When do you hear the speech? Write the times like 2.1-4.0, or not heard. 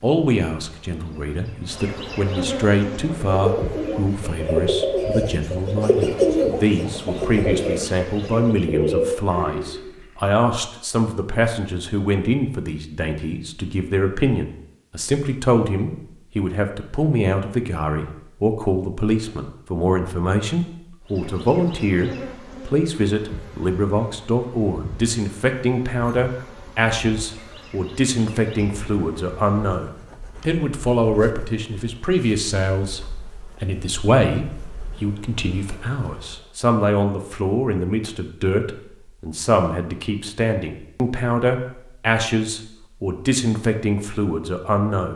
0.0-45.1.